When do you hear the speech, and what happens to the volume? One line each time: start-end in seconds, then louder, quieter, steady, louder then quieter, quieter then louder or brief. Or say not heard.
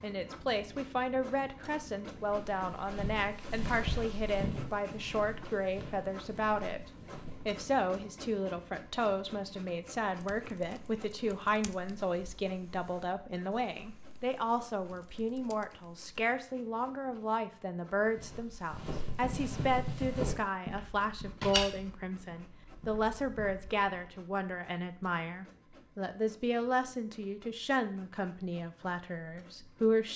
0.0-30.1 steady.